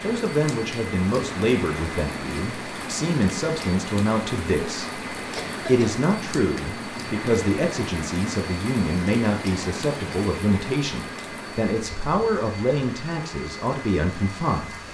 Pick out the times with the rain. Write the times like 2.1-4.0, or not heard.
0.0-14.8.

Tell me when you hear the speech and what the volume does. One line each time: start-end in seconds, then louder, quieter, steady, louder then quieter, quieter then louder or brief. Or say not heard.
0.0-14.8 steady.